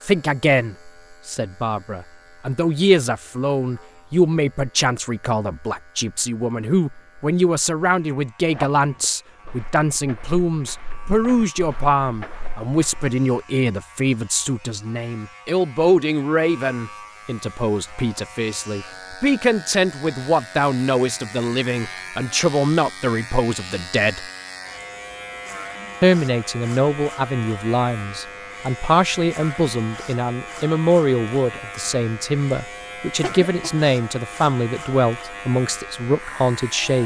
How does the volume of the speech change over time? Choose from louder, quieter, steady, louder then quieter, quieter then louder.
steady.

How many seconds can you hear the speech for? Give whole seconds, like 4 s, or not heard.
35 s.